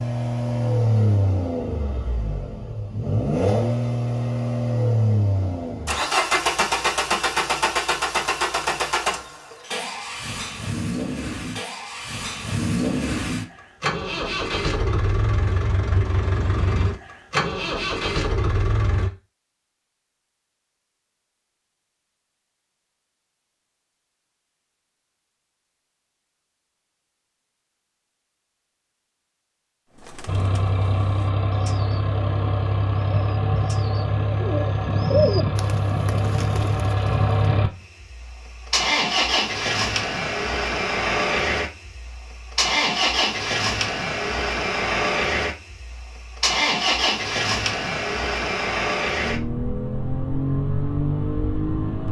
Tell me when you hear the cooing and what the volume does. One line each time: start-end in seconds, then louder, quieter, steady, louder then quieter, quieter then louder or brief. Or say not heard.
29.9-37.5 louder then quieter.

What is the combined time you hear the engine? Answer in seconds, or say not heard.
41 s.